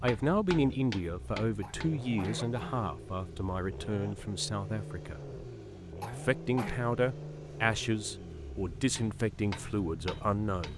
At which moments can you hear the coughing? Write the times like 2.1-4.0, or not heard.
1.6-2.9, 6.0-6.8.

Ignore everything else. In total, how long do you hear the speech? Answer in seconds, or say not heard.
10 s.